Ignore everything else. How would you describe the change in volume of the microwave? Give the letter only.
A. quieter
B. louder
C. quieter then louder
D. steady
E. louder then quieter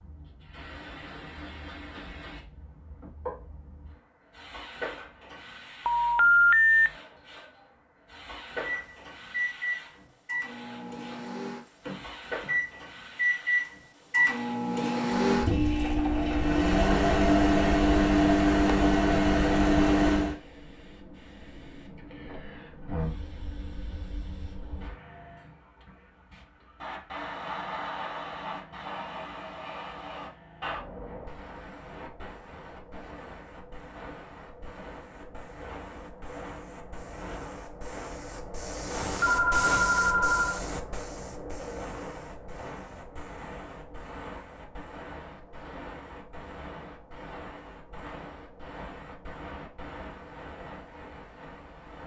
B.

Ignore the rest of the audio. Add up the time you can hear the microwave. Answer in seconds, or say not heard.
12 s.